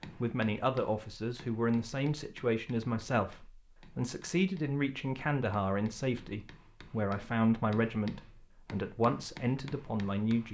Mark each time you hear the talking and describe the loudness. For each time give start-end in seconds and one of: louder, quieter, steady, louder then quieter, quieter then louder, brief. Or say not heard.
0.1-10.4 steady.